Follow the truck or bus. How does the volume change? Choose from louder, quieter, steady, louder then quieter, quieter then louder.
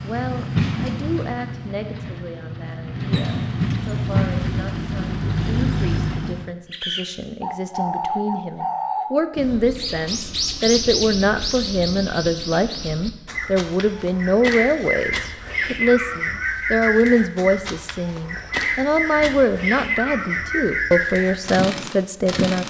quieter then louder.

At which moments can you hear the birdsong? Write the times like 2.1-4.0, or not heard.
6.7-22.6.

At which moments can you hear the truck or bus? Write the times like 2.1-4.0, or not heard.
0.0-6.5.